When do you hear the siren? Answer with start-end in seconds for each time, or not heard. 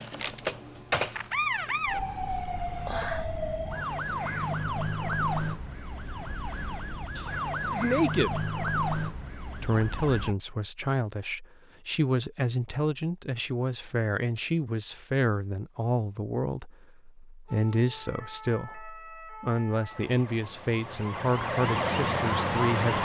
0.0-10.3, 17.4-22.9.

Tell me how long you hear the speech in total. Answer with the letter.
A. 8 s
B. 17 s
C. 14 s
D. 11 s
C.